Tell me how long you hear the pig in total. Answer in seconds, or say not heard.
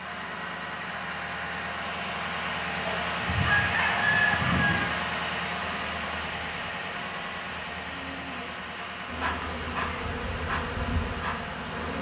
not heard.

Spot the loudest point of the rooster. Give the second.
4 s.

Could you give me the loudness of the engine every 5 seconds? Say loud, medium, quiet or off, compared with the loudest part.
loud, loud, medium.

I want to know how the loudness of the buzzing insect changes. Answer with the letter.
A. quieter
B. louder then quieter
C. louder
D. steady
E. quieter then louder
C.